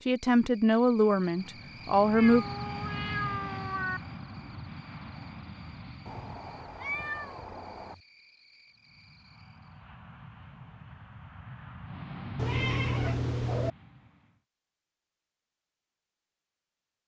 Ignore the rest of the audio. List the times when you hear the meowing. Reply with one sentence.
You can hear the meowing from 2.1 to 4.0 s, from 6.0 to 8.0 s and from 12.3 to 13.7 s.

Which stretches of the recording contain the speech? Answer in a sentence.
You can hear the speech from 0.1 to 2.5 s.